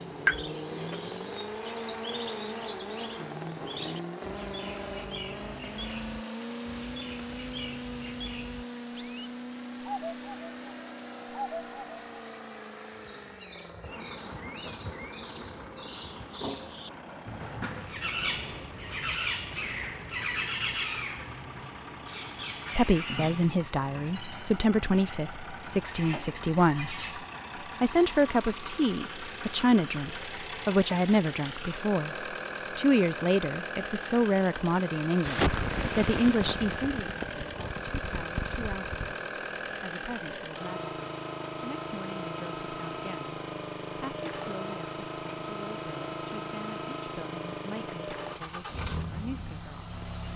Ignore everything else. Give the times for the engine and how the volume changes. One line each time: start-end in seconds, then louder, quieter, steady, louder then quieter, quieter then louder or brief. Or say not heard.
0.0-50.3 quieter then louder.